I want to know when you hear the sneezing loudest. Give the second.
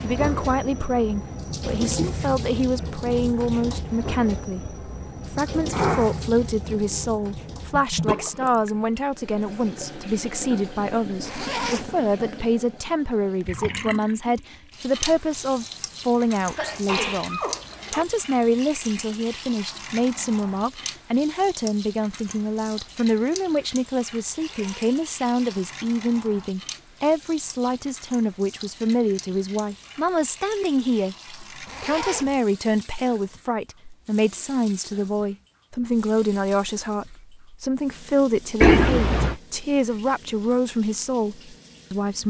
39 s.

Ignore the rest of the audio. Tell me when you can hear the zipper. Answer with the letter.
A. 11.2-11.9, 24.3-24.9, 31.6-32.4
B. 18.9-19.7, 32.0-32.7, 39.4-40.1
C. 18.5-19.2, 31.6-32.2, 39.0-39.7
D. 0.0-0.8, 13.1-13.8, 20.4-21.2
A.